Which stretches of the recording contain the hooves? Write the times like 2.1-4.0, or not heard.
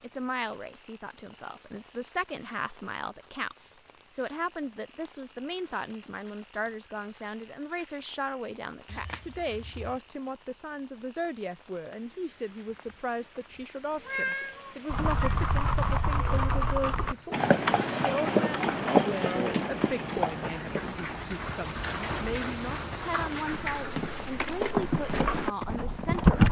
14.9-26.4.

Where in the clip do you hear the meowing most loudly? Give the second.
14 s.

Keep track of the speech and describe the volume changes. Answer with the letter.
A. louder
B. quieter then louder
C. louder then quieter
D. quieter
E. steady
E.